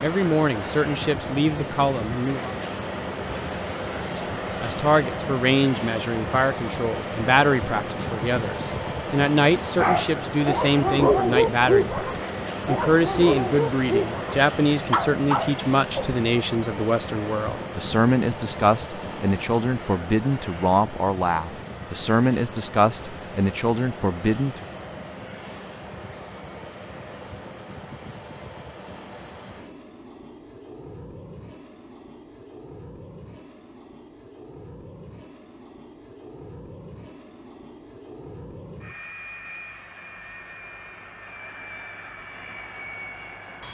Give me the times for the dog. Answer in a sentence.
You can hear the dog from 9.8 to 16.1 s.